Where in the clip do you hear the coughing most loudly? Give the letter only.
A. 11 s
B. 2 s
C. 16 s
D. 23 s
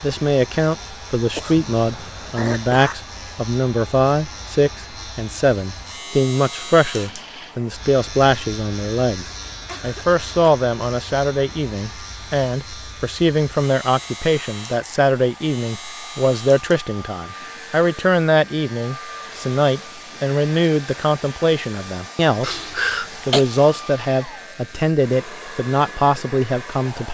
D.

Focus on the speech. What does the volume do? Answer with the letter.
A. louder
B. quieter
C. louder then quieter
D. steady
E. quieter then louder
D.